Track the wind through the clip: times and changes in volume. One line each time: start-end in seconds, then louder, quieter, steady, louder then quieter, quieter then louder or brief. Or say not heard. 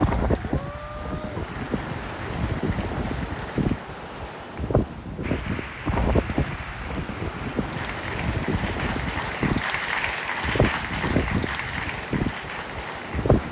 0.0-13.4 steady.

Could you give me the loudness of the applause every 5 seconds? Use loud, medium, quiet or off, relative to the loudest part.
medium, loud, loud.